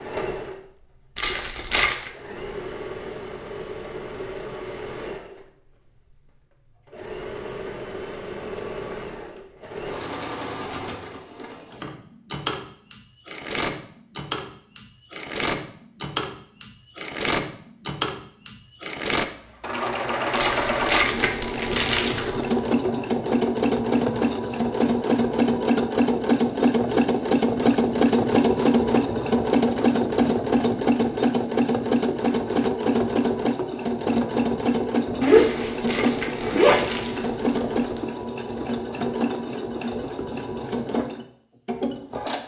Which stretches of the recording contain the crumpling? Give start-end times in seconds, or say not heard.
1.1-2.1, 20.3-22.6, 35.3-38.0.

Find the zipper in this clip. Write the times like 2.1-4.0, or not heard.
35.2-36.9.